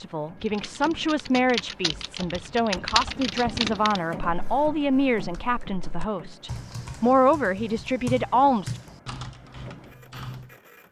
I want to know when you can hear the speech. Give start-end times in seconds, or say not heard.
0.0-8.8.